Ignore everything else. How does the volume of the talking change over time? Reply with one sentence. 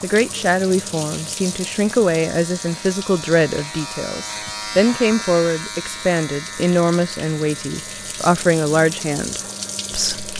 The volume of the talking stays about the same.